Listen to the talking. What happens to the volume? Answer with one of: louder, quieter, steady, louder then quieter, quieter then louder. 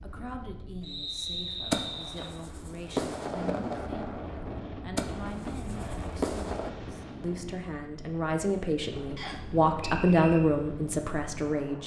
louder.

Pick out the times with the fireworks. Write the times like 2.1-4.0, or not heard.
1.7-6.7.